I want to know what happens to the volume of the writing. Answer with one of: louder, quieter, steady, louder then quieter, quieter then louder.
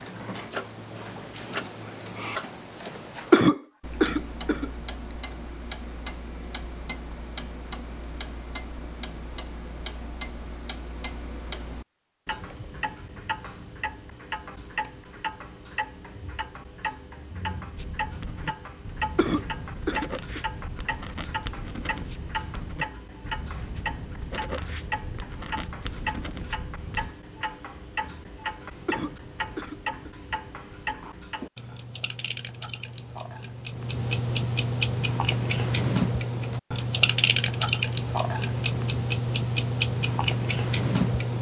steady.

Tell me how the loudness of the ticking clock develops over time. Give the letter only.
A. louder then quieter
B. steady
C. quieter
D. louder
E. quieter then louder
D.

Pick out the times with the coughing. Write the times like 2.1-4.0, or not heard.
3.3-4.7, 19.1-20.4, 28.9-30.1.